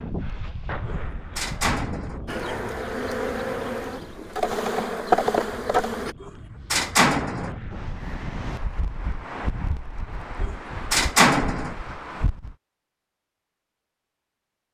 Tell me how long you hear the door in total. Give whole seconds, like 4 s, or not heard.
4 s.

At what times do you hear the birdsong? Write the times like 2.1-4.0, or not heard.
not heard.